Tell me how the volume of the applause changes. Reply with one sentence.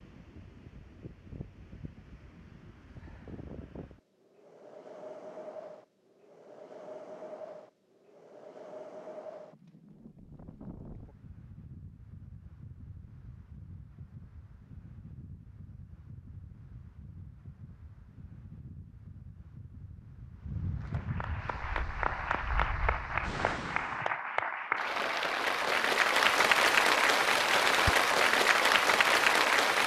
The loudness of the applause goes up.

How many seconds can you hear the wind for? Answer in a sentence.
You can hear the wind for 24 seconds altogether.